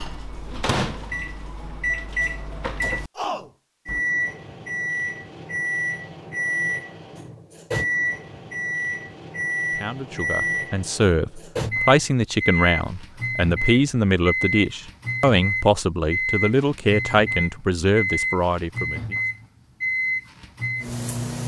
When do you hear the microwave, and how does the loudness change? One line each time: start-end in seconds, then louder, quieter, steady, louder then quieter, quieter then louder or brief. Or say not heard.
0.0-21.4 steady.